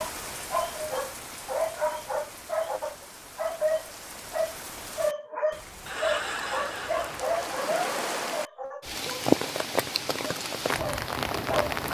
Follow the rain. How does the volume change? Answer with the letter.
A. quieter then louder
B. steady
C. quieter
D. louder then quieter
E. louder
E.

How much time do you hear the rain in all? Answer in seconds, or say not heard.
12 s.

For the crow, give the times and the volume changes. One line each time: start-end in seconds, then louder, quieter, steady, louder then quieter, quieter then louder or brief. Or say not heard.
not heard.